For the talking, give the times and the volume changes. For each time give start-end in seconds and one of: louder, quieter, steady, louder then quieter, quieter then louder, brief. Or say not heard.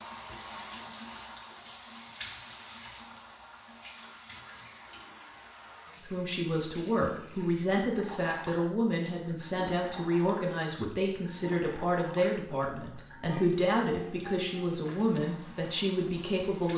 6.0-16.7 steady.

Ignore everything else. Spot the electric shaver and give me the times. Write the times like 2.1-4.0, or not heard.
not heard.